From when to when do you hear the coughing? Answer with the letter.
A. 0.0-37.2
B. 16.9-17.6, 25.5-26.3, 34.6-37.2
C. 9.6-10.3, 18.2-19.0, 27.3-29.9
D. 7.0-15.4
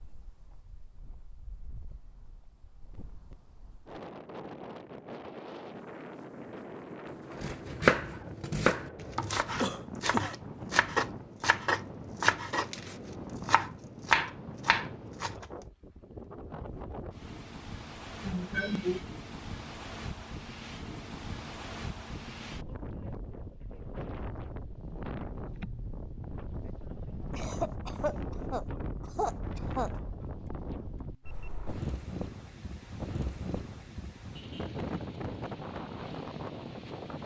C.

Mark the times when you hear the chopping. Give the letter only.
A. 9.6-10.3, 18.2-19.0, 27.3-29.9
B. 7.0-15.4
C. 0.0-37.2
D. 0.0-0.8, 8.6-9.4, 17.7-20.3
B.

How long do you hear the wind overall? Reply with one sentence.
You can hear the wind for 37 seconds altogether.